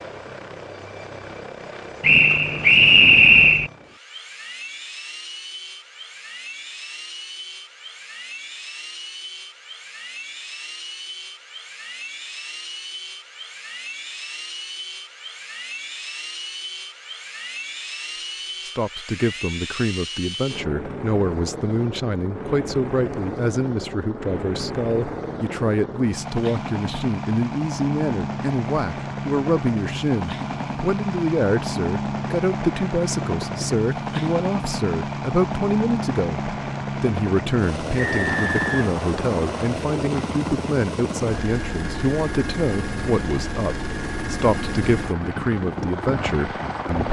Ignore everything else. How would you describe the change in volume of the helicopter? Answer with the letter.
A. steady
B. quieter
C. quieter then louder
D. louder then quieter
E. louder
E.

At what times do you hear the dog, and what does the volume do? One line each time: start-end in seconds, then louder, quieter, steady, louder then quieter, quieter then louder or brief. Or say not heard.
not heard.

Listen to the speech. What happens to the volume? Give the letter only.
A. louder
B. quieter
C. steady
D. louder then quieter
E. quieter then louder
C.